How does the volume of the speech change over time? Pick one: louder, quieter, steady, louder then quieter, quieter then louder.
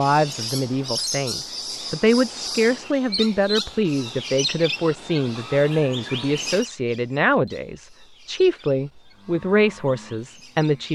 steady.